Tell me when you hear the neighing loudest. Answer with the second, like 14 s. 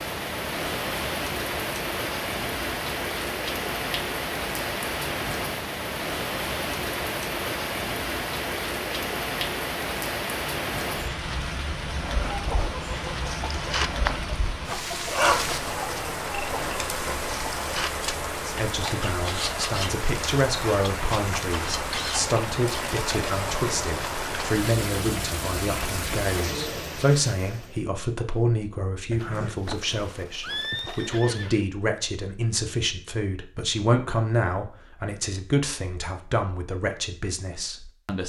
31 s.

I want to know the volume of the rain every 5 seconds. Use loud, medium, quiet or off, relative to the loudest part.
loud, loud, loud, loud, loud, loud, off, off.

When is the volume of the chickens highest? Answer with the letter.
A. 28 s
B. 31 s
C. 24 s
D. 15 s
D.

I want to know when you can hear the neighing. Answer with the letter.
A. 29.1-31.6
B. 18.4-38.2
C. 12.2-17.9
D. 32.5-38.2
A.